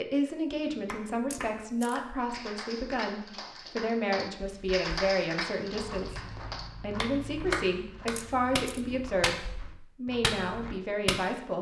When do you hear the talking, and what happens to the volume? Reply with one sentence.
The talking can be heard from 0.0 to 11.5 s, at a steady volume.